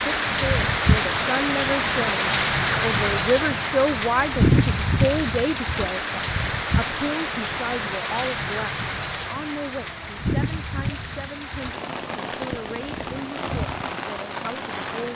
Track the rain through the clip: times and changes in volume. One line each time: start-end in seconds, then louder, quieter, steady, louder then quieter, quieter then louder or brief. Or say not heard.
0.0-15.1 quieter.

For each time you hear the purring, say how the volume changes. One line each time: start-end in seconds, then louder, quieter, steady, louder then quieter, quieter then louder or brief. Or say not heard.
not heard.